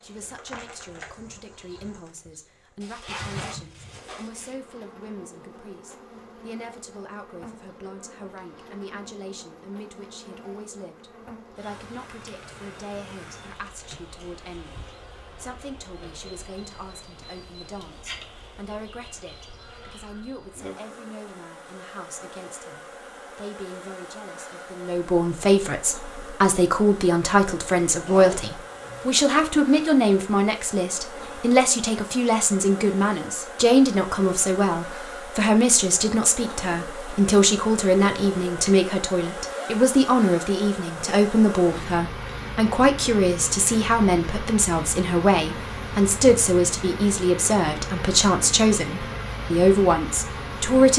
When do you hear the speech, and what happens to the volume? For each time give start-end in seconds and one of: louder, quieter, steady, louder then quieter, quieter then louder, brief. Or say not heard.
0.0-50.9 louder.